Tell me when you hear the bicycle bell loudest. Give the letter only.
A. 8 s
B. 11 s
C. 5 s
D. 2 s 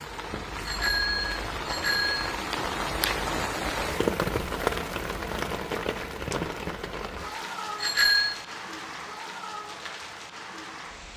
A.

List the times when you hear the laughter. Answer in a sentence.
The laughter can't be heard in this clip.